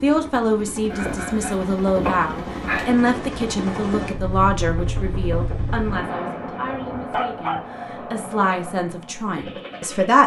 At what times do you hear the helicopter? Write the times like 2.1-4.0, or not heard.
0.0-10.2.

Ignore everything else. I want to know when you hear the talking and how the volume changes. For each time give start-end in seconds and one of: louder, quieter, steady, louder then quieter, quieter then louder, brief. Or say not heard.
0.0-10.2 quieter then louder.